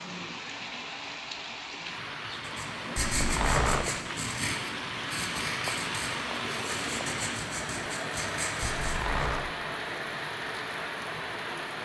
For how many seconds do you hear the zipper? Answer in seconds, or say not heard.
2 s.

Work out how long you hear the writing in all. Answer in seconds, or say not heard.
7 s.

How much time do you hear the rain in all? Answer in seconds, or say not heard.
12 s.